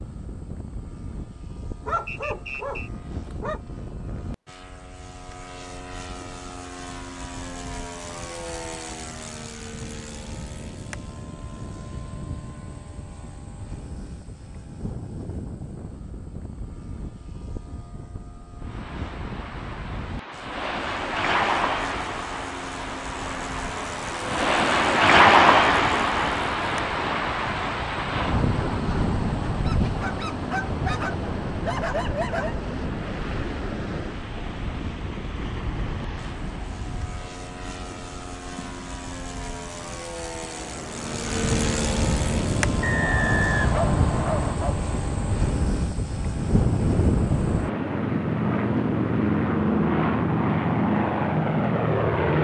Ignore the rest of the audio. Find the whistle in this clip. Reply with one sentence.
The whistle can be heard from 2.0 to 2.9 s and from 42.8 to 44.5 s.